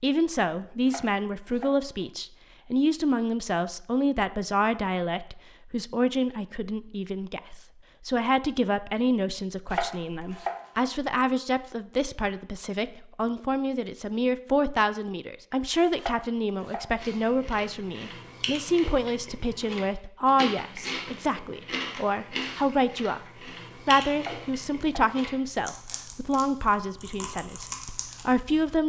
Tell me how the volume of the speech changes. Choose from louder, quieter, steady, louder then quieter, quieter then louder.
steady.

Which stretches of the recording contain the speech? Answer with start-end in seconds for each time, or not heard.
0.0-23.2, 23.9-28.8.